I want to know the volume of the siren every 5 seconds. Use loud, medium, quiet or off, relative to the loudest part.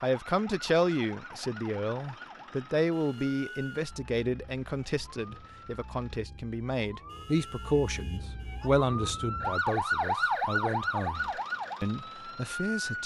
quiet, medium, loud.